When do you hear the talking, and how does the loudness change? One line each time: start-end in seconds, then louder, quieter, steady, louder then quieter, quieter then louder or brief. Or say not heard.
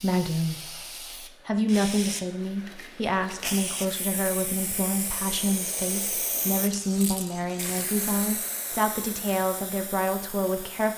0.0-0.8 brief
1.4-10.9 steady.